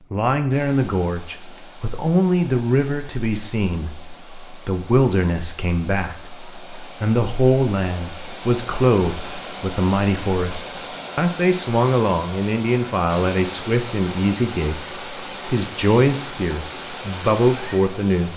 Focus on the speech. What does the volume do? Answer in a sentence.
The loudness of the speech stays about the same.